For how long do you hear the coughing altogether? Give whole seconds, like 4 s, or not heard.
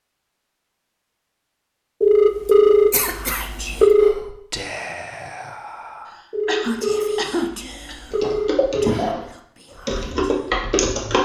3 s.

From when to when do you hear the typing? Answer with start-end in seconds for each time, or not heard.
8.1-9.2, 9.8-11.2.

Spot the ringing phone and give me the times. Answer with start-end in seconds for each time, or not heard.
2.0-4.2, 6.3-9.0.